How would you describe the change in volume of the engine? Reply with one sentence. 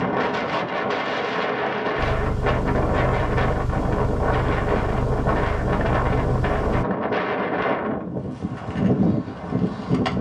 The volume of the engine stays about the same.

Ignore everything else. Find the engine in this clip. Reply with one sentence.
You can hear the engine from 1.9 to 6.8 s.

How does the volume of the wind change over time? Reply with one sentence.
The loudness of the wind stays about the same.